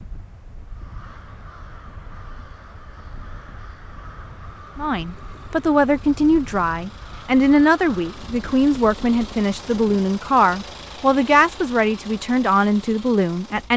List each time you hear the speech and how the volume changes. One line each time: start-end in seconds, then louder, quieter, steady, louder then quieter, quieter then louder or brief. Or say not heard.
4.8-13.7 steady.